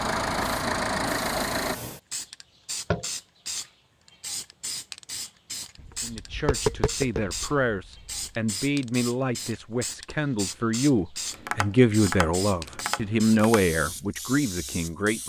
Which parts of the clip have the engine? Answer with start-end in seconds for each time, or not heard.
0.0-1.8.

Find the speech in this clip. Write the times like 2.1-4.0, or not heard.
6.0-15.2.